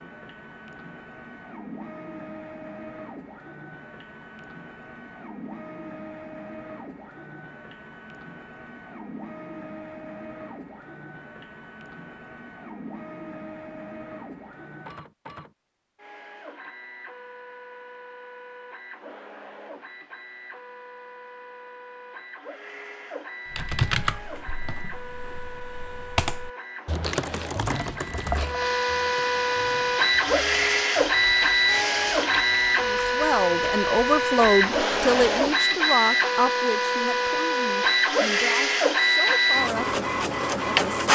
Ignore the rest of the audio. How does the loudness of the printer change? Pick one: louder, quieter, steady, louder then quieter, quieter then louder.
louder.